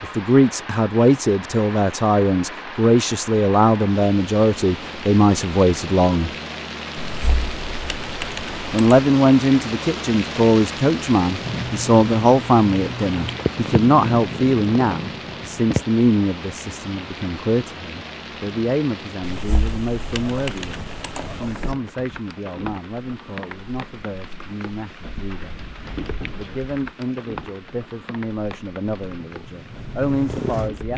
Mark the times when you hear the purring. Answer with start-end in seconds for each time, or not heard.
11.3-15.8, 29.0-30.9.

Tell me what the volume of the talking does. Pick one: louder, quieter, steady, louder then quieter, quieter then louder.
quieter.